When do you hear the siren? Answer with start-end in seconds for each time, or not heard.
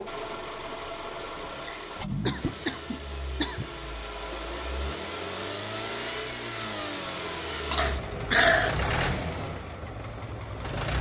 not heard.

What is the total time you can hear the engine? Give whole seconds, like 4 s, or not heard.
11 s.